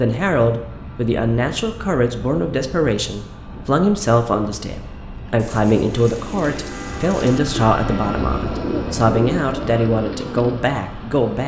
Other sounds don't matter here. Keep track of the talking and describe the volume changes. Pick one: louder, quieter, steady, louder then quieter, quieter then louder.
steady.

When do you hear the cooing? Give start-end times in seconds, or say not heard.
5.3-10.8.